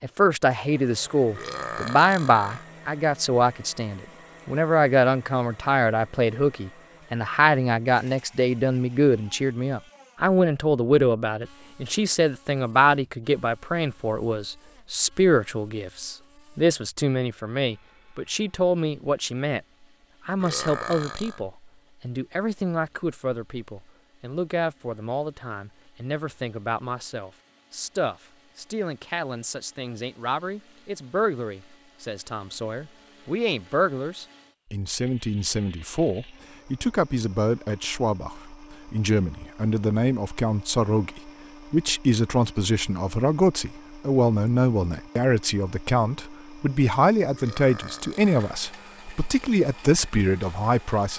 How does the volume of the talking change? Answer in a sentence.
The volume of the talking goes down, then up.